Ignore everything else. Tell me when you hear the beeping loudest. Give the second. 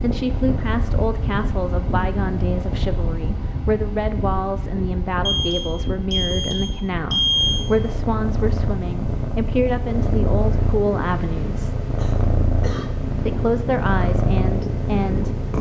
7 s.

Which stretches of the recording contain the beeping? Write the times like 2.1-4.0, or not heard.
5.2-7.7.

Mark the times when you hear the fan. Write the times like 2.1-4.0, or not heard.
0.0-15.5.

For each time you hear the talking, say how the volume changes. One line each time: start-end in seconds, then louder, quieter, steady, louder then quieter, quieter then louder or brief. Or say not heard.
0.0-11.8 steady
13.2-15.3 brief.